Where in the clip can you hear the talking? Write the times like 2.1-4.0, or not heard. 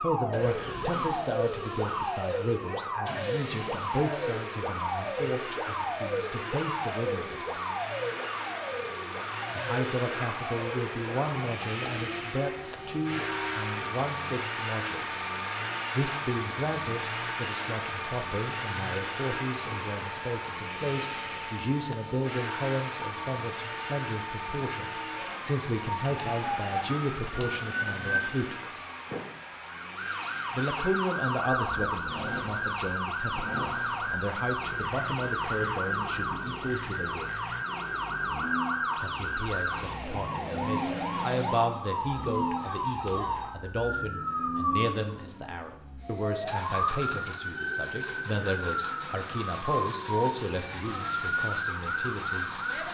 0.0-7.7, 9.6-15.2, 15.9-28.9, 30.5-37.2, 39.0-52.5.